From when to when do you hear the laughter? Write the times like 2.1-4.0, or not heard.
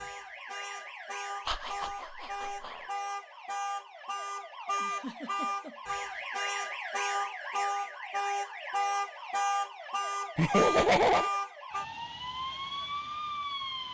1.4-2.8, 4.8-6.2, 10.3-11.3.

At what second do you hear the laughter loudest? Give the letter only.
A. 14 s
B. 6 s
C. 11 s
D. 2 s
C.